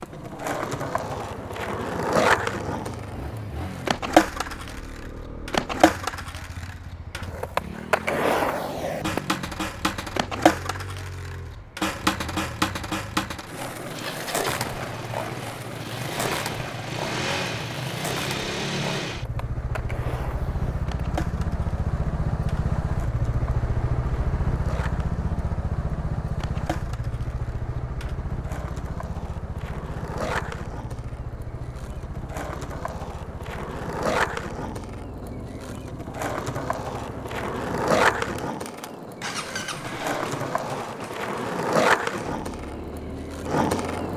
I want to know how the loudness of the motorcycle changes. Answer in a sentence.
The loudness of the motorcycle goes up, then down.